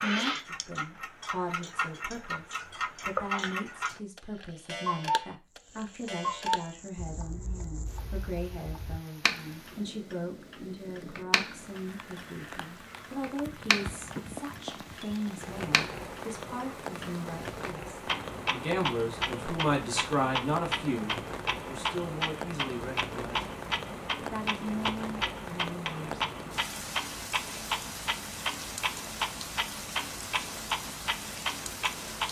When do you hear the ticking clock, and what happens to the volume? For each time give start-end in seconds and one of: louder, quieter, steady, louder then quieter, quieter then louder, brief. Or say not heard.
0.0-32.2 quieter then louder.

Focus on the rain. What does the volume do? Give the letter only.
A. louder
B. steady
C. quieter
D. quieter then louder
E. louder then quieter
A.